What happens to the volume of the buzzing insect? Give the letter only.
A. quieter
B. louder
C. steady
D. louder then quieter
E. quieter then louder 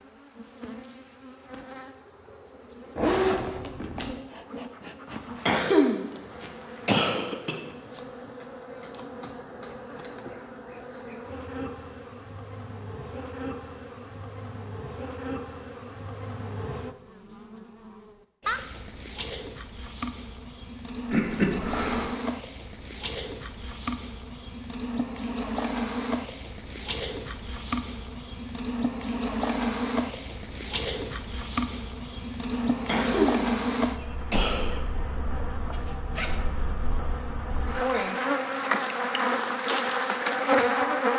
B.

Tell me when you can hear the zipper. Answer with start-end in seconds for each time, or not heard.
3.0-4.2, 35.5-36.5.